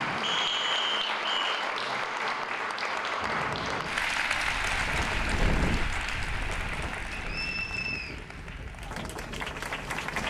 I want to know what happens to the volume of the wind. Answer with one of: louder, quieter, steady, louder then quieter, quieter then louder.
louder then quieter.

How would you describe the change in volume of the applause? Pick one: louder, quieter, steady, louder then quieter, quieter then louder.
quieter.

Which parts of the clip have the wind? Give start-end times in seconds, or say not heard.
3.2-10.2.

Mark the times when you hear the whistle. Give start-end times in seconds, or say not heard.
0.2-1.6, 7.2-8.2.